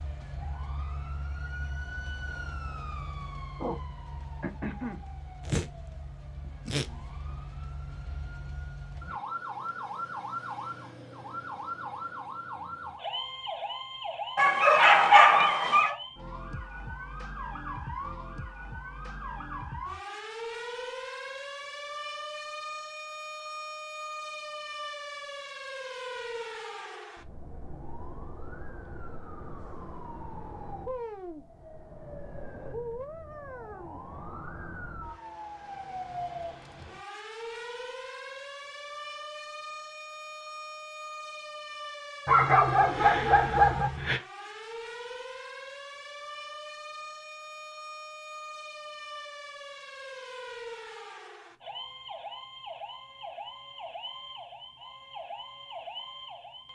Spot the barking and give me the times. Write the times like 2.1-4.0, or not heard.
14.3-15.9, 42.2-44.2.